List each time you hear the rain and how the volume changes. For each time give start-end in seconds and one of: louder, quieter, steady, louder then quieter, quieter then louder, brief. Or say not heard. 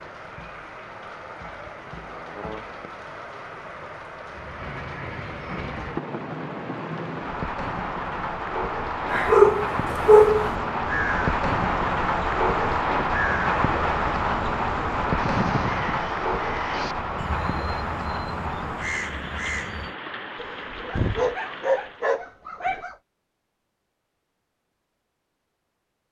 0.0-22.1 louder then quieter.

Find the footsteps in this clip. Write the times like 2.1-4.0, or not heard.
not heard.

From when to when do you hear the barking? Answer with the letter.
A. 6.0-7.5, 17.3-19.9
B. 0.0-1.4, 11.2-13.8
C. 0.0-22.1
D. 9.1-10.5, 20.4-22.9
D.